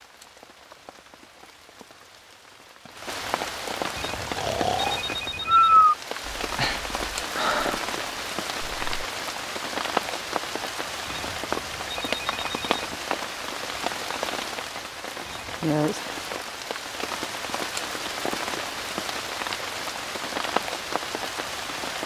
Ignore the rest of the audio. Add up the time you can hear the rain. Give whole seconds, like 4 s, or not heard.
22 s.